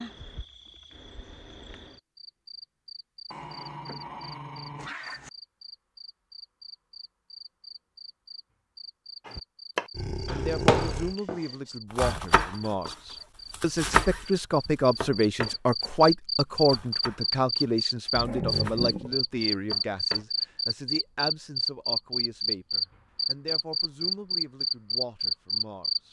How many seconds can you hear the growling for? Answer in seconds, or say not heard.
4 s.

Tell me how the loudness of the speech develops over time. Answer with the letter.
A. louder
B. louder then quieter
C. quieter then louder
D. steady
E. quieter
B.